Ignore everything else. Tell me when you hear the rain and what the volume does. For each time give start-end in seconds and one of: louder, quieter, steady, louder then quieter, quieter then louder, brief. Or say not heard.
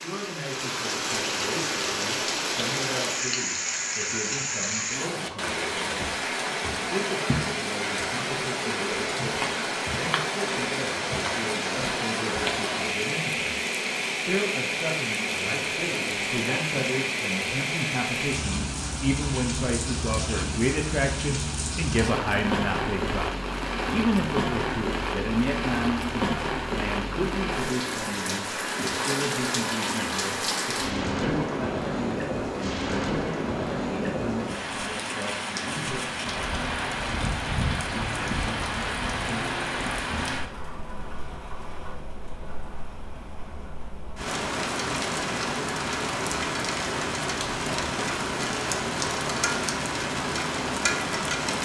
0.0-51.6 steady.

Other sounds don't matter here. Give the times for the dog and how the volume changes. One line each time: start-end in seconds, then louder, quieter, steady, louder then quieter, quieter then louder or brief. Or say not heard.
not heard.